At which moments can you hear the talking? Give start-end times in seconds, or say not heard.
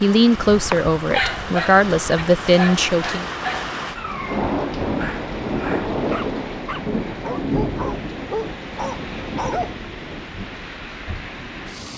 0.0-3.2.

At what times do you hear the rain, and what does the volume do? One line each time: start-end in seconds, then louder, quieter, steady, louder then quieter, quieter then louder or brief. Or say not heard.
0.0-11.9 louder then quieter.